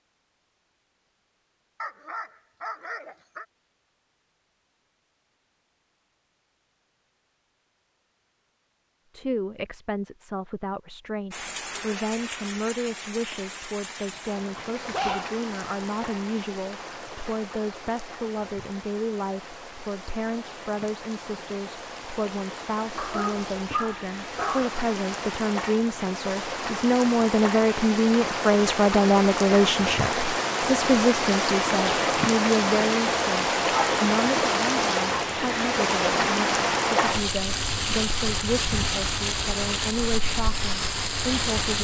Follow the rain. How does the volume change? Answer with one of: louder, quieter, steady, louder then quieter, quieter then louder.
louder.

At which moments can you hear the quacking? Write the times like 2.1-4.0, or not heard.
not heard.